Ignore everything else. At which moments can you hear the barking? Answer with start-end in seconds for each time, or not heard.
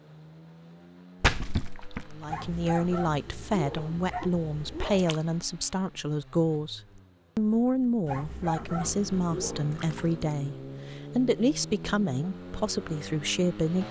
2.2-5.1, 8.1-9.7.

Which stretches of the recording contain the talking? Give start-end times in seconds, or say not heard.
2.1-13.8.